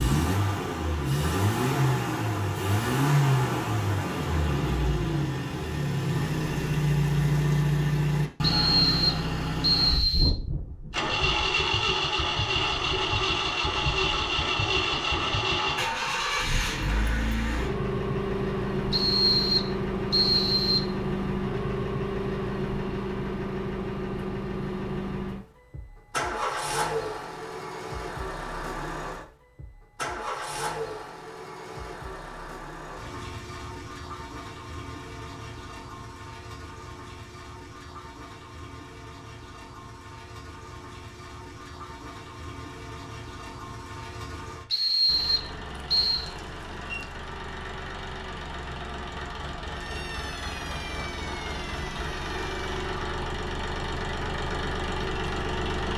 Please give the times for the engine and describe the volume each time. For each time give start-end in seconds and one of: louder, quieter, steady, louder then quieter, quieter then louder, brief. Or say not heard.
0.0-55.9 quieter then louder.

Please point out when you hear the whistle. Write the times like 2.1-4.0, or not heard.
8.4-10.3, 18.9-20.9, 44.7-46.3.